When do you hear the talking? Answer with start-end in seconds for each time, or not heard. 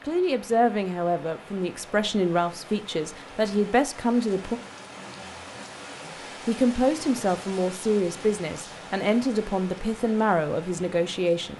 0.0-4.6, 6.5-11.5.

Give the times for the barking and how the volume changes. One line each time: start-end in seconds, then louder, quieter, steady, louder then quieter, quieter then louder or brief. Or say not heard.
not heard.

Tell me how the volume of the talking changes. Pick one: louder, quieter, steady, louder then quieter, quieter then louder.
steady.